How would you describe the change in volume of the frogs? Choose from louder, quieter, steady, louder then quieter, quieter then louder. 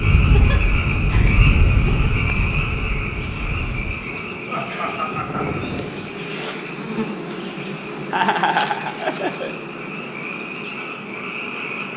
quieter then louder.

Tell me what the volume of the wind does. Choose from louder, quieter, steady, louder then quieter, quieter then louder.
quieter then louder.